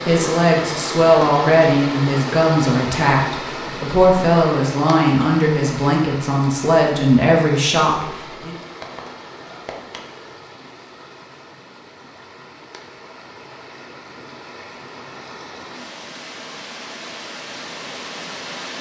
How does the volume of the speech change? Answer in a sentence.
The volume of the speech stays about the same.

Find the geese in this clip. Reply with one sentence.
The geese can be heard from 8.8 to 10.3 s.